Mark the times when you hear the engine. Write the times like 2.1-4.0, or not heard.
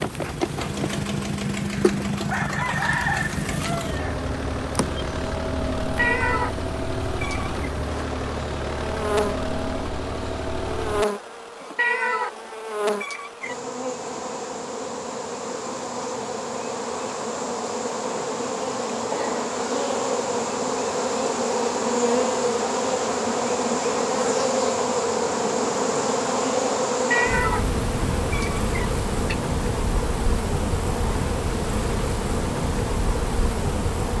0.0-11.1.